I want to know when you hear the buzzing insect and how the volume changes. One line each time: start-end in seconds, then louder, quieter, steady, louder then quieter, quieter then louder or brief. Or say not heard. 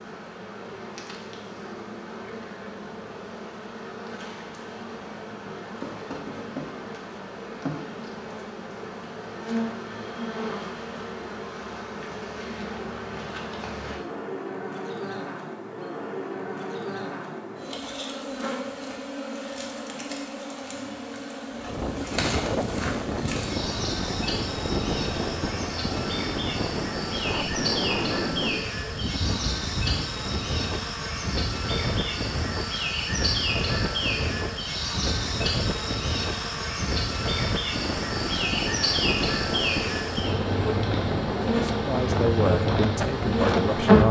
0.0-44.0 louder.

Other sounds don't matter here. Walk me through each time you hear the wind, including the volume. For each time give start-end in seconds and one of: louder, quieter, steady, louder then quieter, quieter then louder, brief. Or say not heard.
21.5-44.0 steady.